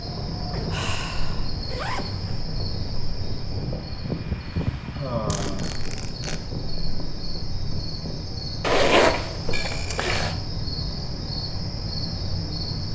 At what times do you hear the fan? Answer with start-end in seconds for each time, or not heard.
0.0-8.2.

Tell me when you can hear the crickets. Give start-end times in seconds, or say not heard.
0.0-12.9.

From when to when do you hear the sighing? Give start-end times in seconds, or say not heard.
0.7-1.5, 4.9-5.8, 9.5-10.2.